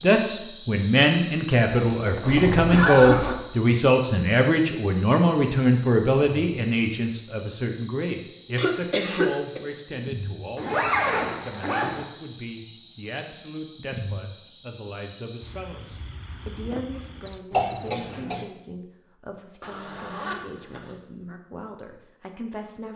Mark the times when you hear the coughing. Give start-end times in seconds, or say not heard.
2.2-3.4, 8.6-9.6, 17.5-18.4.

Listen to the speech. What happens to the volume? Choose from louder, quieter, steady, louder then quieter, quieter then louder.
quieter.